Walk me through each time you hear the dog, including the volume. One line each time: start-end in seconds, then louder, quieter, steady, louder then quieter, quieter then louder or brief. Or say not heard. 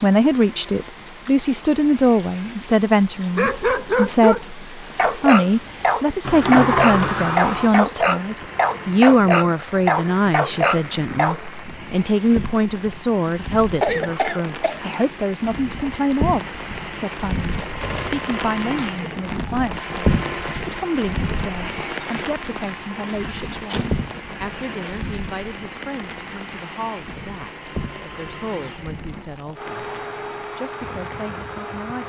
3.4-11.4 steady.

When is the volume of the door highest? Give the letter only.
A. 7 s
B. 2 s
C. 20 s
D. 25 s
A.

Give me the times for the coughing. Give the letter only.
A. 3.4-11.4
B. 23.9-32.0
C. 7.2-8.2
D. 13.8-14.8
D.